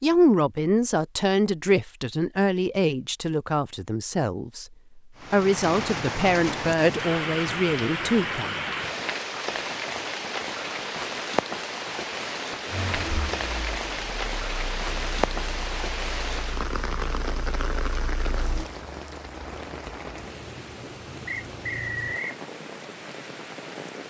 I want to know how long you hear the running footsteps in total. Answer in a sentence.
You can't hear the running footsteps here.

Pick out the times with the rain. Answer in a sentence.
The rain can be heard from 5.2 to 24.0 s.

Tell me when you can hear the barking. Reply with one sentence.
You can't hear the barking here.